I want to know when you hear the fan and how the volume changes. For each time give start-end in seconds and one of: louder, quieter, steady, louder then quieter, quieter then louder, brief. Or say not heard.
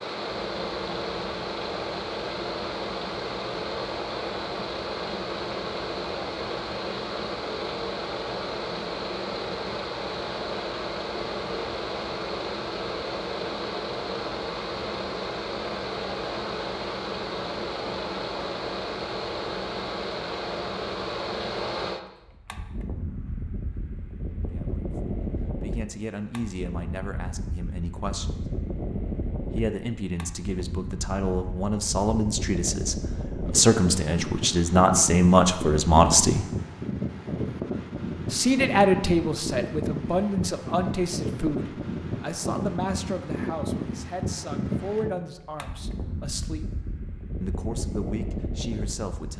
0.0-49.3 steady.